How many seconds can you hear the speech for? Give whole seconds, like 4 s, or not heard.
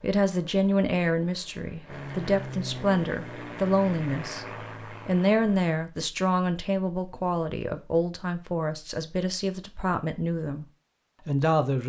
11 s.